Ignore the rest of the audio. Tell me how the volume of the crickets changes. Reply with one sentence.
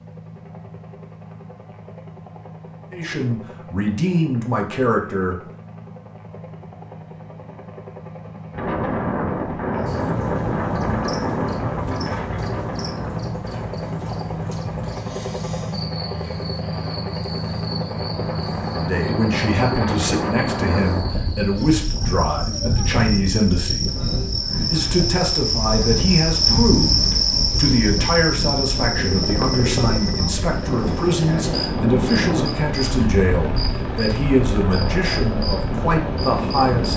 The loudness of the crickets goes up, then down.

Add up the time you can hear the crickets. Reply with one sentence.
The crickets can be heard for 27 seconds in total.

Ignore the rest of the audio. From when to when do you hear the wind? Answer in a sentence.
You can hear the wind from 8.5 to 36.9 s.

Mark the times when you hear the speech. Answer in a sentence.
You can hear the speech from 2.9 to 5.3 s, from 18.7 to 23.9 s and from 24.7 to 36.9 s.